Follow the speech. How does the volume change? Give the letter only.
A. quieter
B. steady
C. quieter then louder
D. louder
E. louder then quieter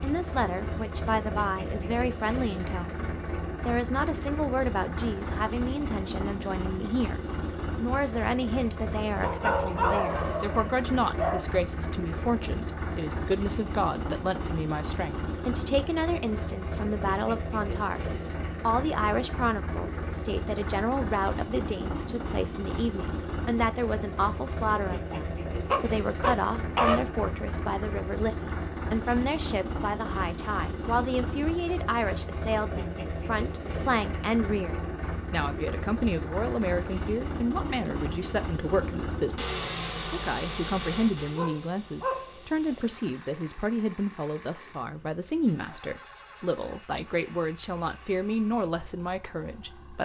B.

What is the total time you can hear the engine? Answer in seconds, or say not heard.
50 s.